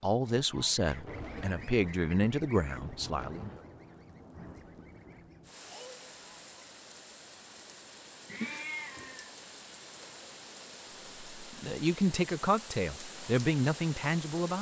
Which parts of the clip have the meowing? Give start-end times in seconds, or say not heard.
8.2-9.3.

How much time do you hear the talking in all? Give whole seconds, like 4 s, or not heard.
7 s.